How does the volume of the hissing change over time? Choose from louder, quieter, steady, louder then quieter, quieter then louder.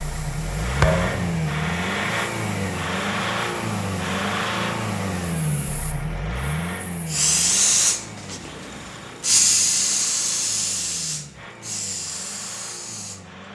louder then quieter.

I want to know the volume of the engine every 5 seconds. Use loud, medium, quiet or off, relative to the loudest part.
loud, medium, quiet.